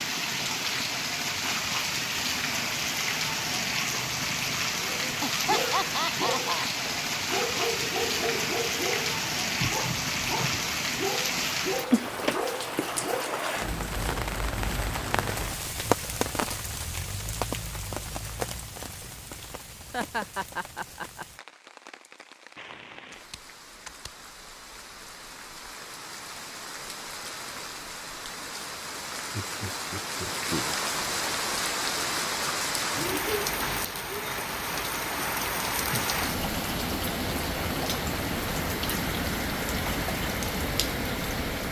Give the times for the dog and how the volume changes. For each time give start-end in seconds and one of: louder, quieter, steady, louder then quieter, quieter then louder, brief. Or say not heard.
4.8-13.4 steady.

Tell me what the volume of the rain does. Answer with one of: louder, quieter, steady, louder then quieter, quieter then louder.
quieter then louder.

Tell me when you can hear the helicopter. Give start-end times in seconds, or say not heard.
not heard.